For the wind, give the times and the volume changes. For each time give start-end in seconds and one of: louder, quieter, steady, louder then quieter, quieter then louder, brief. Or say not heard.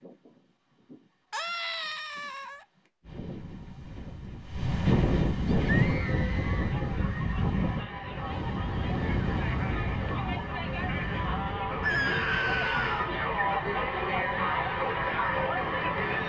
0.0-16.2 louder then quieter.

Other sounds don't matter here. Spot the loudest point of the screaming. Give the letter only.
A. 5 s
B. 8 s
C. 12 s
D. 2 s
C.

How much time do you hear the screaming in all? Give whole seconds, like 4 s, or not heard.
4 s.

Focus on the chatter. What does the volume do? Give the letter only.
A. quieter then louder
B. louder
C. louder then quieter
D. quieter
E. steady
B.